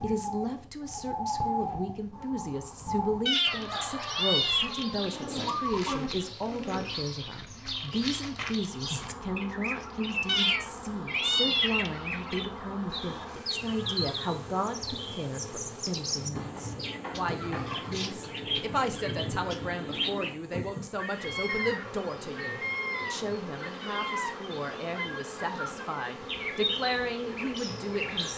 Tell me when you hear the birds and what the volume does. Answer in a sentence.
You can hear the birds from 0.0 to 28.3 s, at a steady volume.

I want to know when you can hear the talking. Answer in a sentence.
You can hear the talking from 0.0 to 28.3 s.